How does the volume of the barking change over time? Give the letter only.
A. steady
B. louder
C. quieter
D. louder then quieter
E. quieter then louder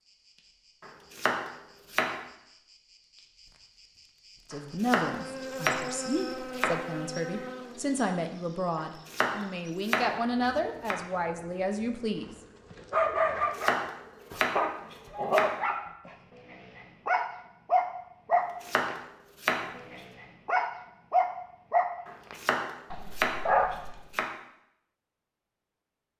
A.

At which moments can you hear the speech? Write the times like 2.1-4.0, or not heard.
4.5-12.3.